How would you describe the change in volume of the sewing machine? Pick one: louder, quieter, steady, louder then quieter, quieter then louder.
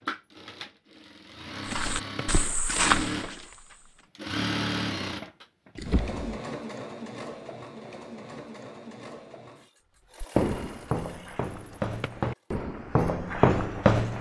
louder then quieter.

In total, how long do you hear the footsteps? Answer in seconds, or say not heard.
6 s.